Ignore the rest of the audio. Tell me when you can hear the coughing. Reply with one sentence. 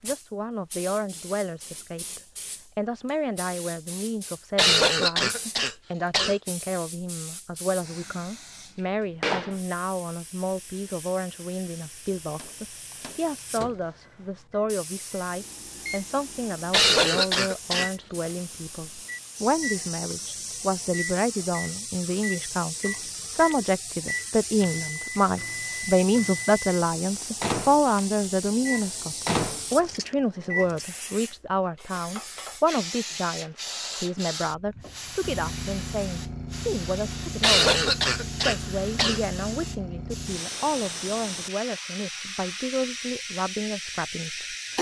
You can hear the coughing from 4.5 to 6.3 s, from 16.7 to 17.9 s and from 37.4 to 39.2 s.